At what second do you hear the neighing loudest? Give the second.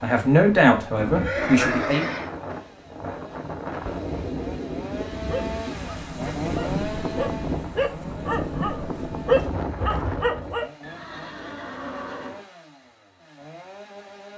2 s.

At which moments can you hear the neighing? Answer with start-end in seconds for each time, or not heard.
0.9-2.3, 10.8-12.4.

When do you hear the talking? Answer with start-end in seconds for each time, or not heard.
0.0-2.0.